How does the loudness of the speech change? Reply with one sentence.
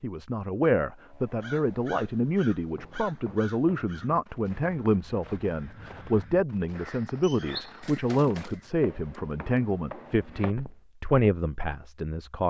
The loudness of the speech stays about the same.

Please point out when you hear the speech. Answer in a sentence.
The speech can be heard from 0.0 to 12.4 s.